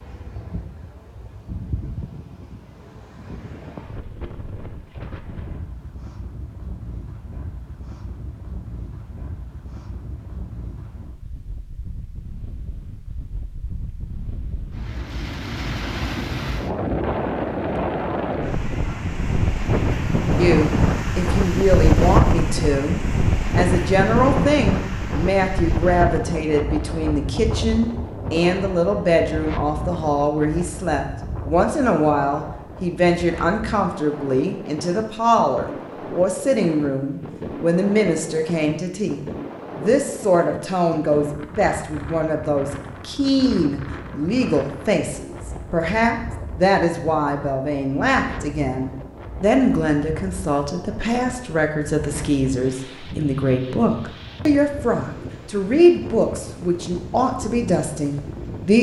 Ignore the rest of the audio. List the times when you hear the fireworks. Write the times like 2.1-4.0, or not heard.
not heard.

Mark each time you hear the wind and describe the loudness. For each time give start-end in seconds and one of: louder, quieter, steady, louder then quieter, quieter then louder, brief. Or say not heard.
0.0-58.7 louder then quieter.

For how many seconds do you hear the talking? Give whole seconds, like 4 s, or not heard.
38 s.